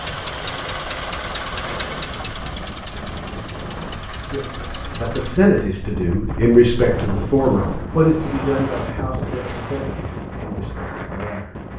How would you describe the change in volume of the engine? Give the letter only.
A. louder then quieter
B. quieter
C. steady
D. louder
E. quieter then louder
B.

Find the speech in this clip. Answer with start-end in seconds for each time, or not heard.
4.2-11.6.